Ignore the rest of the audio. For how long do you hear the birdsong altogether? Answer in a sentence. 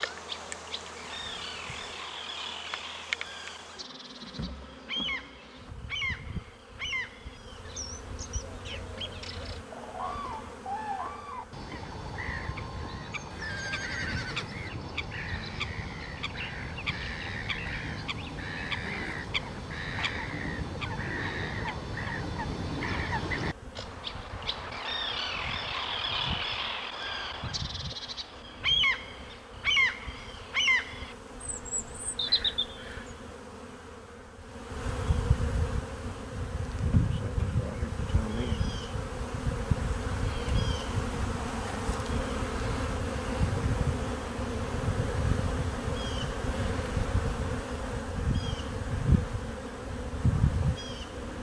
You can hear the birdsong for 33 seconds altogether.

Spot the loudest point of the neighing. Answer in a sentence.
The volume of the neighing peaks at 14 seconds.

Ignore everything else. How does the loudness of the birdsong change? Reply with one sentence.
The volume of the birdsong goes up.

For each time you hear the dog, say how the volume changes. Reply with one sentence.
You can't hear the dog here.